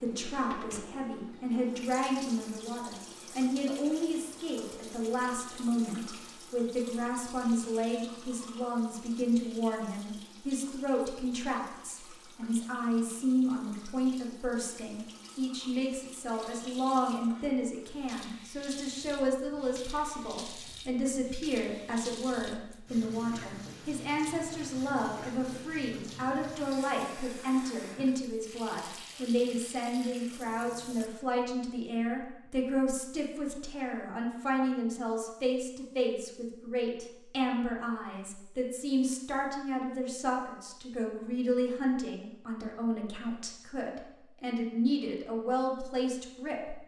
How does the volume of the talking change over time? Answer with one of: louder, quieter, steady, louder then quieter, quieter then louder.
steady.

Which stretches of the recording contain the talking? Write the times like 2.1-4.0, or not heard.
0.0-46.8.